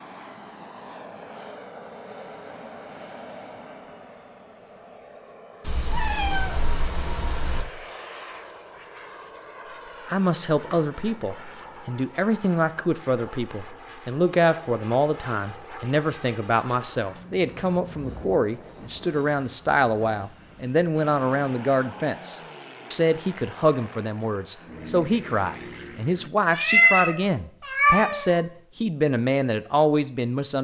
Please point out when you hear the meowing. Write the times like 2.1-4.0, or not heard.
5.6-7.7, 10.5-11.8, 26.5-28.4.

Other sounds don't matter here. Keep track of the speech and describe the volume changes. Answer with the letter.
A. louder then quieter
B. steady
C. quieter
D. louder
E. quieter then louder
B.